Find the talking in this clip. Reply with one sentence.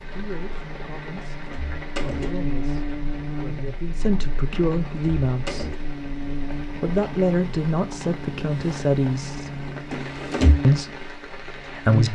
The talking can be heard from 0.1 to 1.4 s, from 2.0 to 5.8 s, from 6.6 to 9.6 s and from 10.6 to 12.1 s.